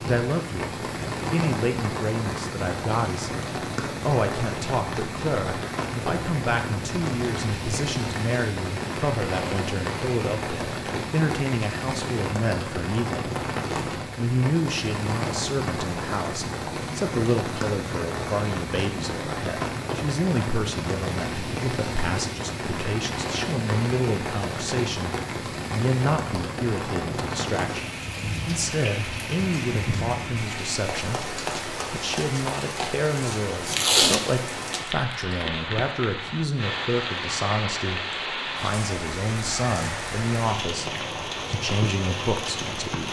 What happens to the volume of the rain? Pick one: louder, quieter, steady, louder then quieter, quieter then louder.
steady.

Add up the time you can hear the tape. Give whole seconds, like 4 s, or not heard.
2 s.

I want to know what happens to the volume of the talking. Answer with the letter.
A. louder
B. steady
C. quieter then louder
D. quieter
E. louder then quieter
B.